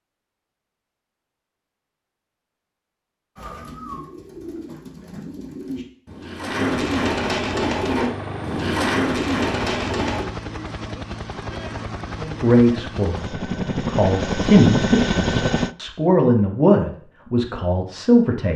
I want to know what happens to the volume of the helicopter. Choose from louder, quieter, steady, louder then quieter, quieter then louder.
louder.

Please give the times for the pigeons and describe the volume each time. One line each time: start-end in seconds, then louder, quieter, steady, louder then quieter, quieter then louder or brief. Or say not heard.
3.4-10.2 louder.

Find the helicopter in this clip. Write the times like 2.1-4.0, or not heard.
7.5-15.8.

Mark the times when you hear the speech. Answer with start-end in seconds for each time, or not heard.
12.2-18.5.